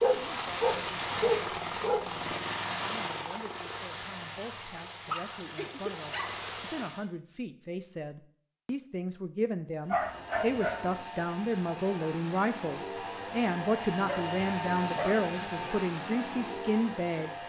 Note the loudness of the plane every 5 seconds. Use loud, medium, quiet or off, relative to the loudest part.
loud, medium, loud, loud.